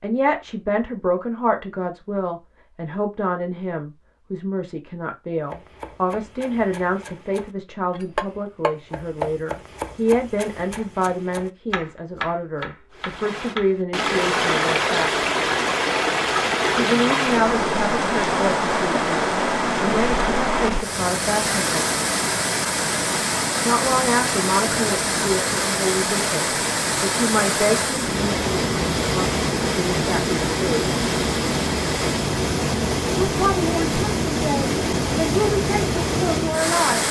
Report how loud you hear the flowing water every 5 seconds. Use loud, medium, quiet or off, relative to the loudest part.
off, off, loud, loud, loud, loud, loud, loud.